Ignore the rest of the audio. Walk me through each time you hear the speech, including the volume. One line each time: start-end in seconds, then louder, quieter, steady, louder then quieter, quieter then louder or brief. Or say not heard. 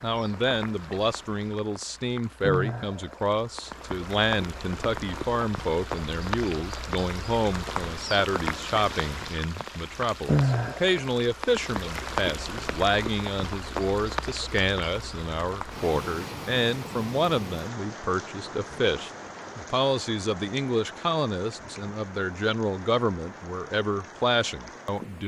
0.0-25.2 steady.